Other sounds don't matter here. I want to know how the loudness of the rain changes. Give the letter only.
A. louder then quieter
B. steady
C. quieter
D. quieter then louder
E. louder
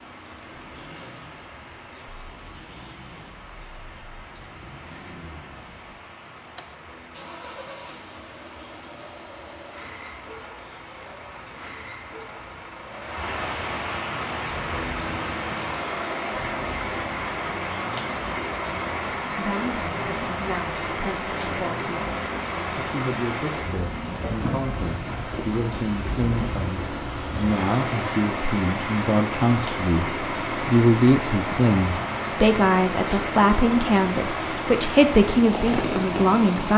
E.